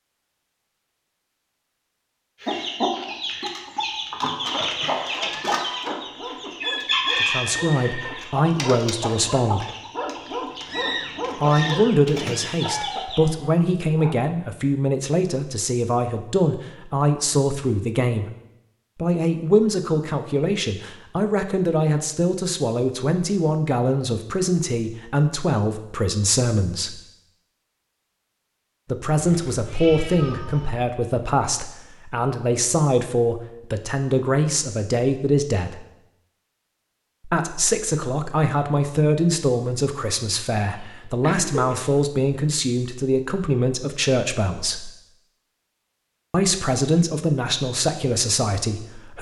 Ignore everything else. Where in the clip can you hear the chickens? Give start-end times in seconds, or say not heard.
2.4-13.2.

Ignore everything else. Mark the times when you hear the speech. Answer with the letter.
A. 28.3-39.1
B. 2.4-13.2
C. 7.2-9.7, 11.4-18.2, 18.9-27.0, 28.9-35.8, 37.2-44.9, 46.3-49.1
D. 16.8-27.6
C.